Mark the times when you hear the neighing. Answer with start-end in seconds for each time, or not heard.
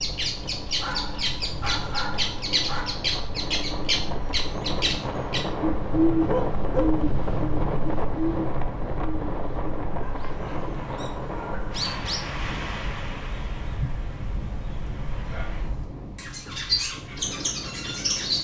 not heard.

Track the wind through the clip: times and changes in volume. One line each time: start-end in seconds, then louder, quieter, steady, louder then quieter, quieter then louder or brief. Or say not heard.
0.0-18.4 louder then quieter.